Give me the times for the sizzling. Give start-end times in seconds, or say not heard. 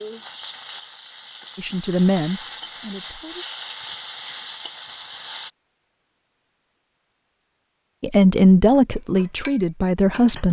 0.0-5.5.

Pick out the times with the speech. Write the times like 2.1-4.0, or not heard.
1.6-3.5, 8.0-10.4.